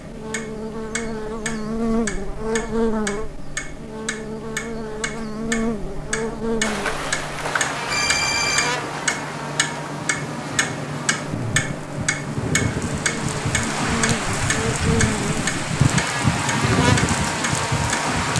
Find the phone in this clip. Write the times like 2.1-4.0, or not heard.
7.8-8.8.